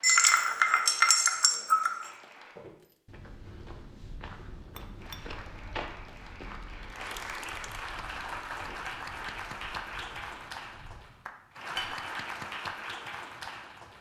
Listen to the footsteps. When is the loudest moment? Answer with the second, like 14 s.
6 s.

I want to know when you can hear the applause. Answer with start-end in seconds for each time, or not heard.
0.0-2.5, 5.0-13.9.